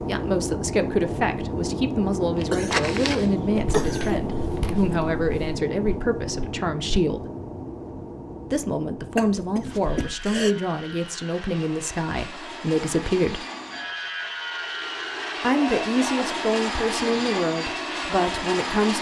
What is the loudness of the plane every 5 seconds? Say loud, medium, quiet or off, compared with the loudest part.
loud, medium, medium, loud.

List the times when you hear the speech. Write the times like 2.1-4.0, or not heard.
0.0-7.2, 8.5-13.4, 15.4-18.9.